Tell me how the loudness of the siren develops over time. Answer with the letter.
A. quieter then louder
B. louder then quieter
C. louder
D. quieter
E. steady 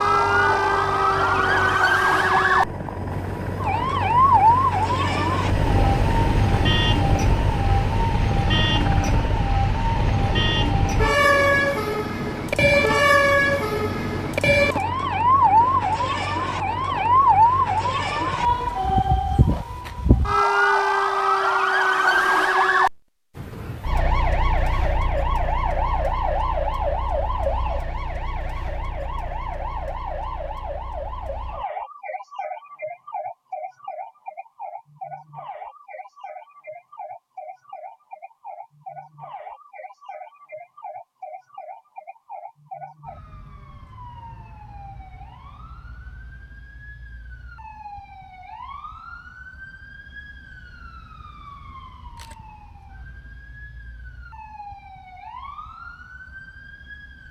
D.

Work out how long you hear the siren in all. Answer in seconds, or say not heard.
57 s.